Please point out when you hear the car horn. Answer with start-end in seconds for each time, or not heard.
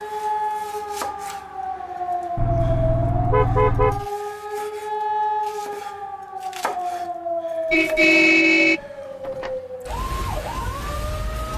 2.4-4.0, 7.7-9.5.